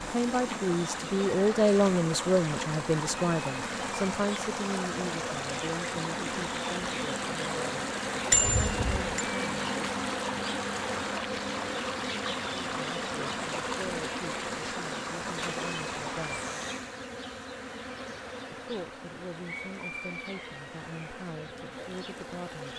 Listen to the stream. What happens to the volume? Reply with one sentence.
The loudness of the stream goes down.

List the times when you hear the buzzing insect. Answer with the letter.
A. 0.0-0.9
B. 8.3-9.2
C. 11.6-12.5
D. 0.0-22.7
D.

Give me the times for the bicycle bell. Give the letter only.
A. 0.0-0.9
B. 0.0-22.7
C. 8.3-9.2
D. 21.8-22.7
C.